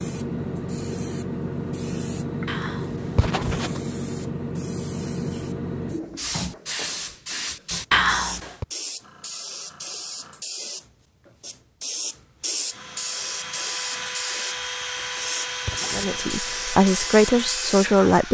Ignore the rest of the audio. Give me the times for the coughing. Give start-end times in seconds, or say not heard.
2.5-3.8, 7.9-8.7, 14.9-16.3.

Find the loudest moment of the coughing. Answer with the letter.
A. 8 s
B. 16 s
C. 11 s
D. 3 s
A.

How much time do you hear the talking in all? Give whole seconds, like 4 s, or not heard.
2 s.